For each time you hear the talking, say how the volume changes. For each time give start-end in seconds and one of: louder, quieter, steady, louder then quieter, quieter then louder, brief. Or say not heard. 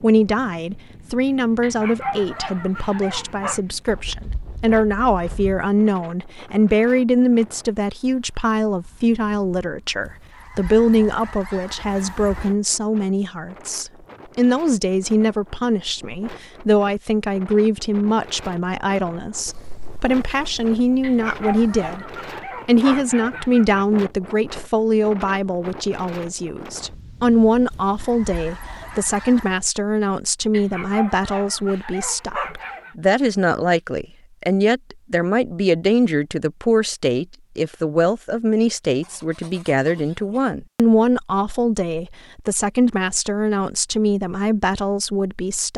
0.0-45.7 steady.